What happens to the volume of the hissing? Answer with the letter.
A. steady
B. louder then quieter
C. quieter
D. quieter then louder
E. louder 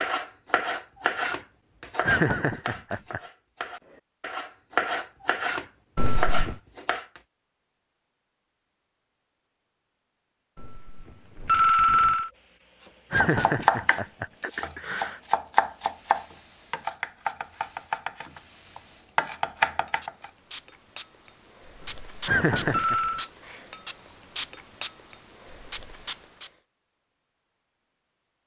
E.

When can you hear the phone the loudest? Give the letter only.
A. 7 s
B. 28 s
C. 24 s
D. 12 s
D.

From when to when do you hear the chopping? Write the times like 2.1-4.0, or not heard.
0.0-7.2, 13.1-20.3.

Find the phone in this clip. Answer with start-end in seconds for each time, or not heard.
6.0-6.5, 10.6-12.3, 21.8-23.3.